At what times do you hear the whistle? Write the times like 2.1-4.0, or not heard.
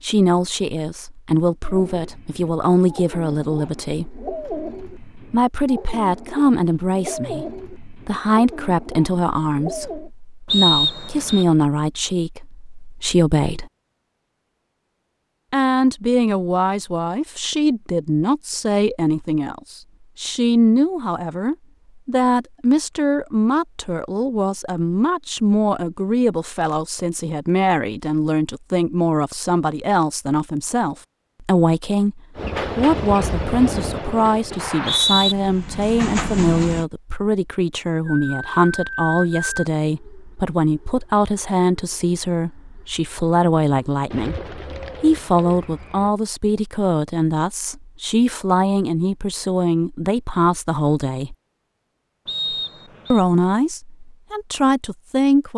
10.4-11.4, 34.5-35.4, 52.2-53.2.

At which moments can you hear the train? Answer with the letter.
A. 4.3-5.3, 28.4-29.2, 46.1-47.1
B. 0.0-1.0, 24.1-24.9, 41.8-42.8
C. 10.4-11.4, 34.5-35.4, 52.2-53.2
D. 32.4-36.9
D.